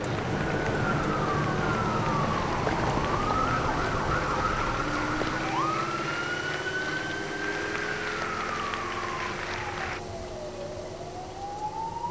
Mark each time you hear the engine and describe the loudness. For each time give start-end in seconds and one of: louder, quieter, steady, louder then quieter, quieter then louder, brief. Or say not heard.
0.0-12.0 quieter.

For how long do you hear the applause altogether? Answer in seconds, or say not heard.
10 s.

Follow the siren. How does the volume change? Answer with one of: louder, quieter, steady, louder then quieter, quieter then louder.
quieter.